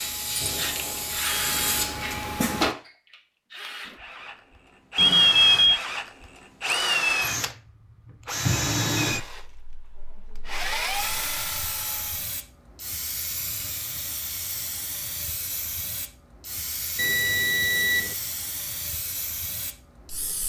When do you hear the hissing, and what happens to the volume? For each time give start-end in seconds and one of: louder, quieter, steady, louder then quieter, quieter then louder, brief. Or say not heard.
0.0-2.8 brief
10.9-20.4 steady.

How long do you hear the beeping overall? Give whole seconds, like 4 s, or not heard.
2 s.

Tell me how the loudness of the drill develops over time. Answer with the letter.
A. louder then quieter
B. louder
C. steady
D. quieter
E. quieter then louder
A.